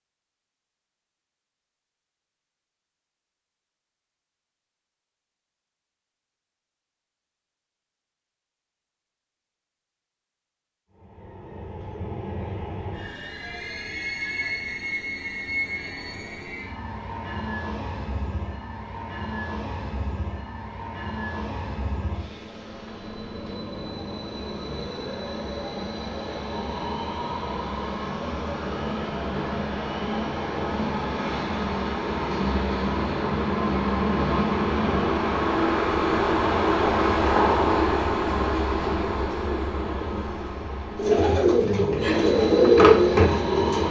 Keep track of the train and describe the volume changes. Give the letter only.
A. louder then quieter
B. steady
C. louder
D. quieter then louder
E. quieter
C.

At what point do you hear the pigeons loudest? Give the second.
43 s.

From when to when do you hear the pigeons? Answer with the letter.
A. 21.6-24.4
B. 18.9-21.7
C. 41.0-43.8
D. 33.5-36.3
C.